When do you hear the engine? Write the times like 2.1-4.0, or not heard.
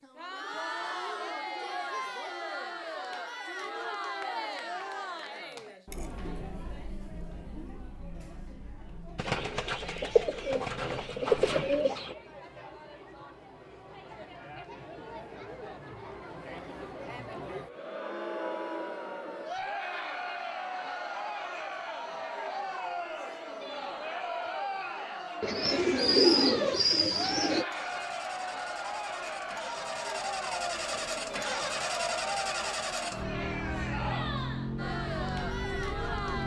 27.7-36.4.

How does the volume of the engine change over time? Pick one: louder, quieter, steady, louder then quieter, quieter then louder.
louder.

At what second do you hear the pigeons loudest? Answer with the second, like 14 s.
26 s.